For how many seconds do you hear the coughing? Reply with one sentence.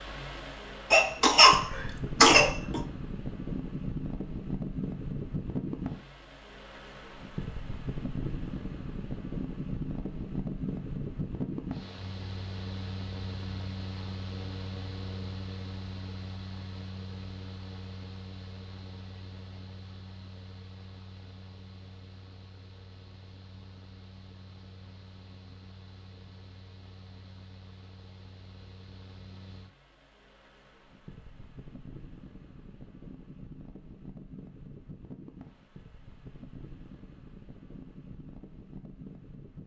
The coughing can be heard for 2 seconds in total.